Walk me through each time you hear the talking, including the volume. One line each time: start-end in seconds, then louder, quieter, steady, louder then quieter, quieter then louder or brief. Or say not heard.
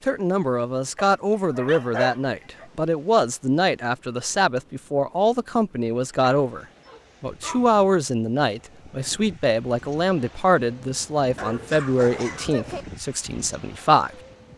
0.0-14.1 steady.